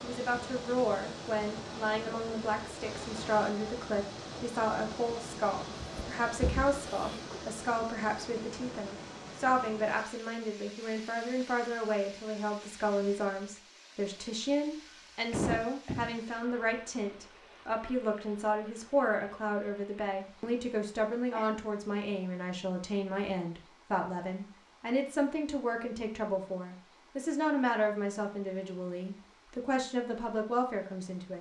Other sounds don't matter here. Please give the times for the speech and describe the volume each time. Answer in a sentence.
The speech can be heard from 0.0 to 31.3 s, at a steady volume.